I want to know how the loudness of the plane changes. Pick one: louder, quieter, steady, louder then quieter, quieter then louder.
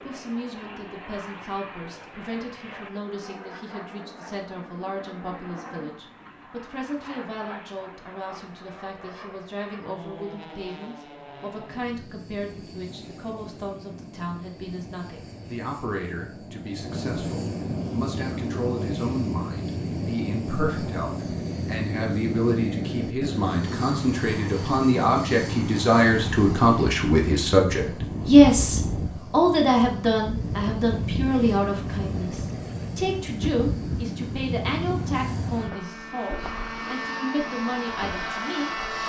louder.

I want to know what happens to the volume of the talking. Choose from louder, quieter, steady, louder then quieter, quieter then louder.
louder then quieter.